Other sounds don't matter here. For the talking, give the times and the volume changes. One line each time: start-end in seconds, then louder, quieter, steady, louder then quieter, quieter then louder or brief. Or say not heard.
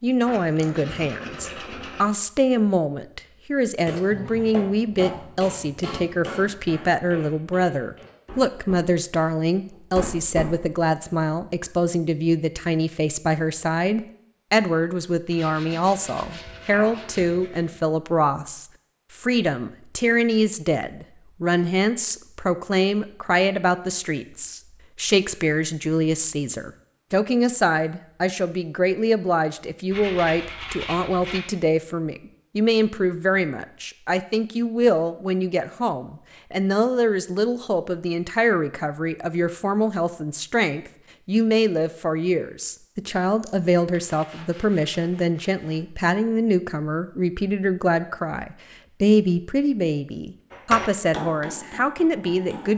0.0-52.7 steady.